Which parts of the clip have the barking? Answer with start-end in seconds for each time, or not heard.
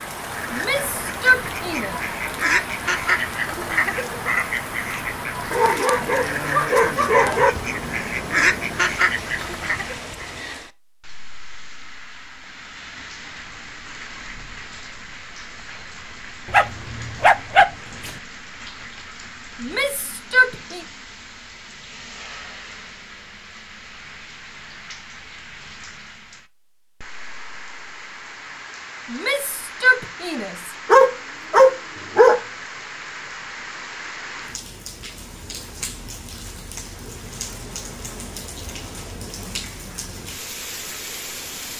5.5-7.5, 16.5-18.1, 30.9-32.4.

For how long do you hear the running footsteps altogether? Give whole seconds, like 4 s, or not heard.
not heard.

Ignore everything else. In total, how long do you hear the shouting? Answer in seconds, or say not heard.
4 s.